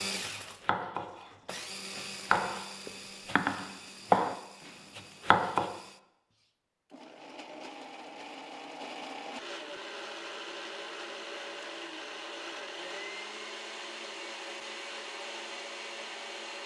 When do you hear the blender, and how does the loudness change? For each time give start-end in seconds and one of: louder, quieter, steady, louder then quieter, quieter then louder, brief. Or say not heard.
0.0-16.6 quieter then louder.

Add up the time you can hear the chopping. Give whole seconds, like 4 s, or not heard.
5 s.